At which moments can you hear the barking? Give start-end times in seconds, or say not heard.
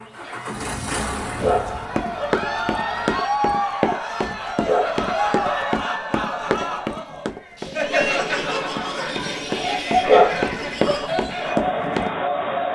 1.4-2.4, 4.7-5.7, 10.1-11.1.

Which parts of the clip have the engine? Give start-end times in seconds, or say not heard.
0.0-3.1.